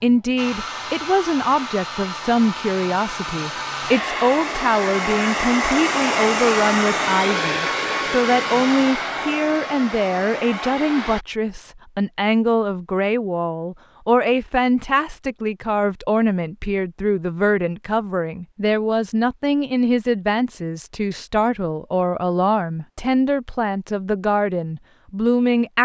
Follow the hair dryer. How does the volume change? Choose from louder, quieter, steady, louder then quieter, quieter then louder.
louder then quieter.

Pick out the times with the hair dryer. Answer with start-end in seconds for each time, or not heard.
0.0-11.2.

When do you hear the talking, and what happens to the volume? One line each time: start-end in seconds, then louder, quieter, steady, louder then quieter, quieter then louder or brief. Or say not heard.
0.0-25.7 steady.